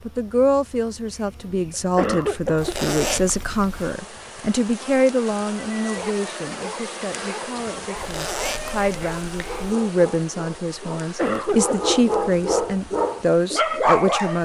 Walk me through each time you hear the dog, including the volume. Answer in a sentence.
The dog can be heard from 5.6 to 14.3 s, getting louder.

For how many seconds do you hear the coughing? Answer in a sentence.
You can hear the coughing for 2 seconds altogether.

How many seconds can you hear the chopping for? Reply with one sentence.
The chopping can't be heard in this clip.